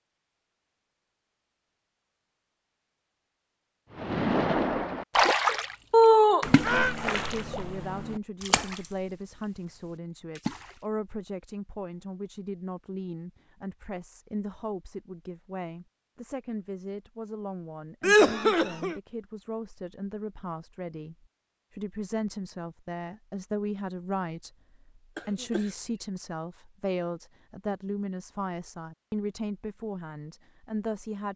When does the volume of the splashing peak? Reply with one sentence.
The loudest moment of the splashing is at 5 seconds.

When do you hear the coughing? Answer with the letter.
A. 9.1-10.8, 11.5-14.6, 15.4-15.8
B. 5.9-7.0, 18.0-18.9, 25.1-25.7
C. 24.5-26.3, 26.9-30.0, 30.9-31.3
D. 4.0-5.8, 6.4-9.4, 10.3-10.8
B.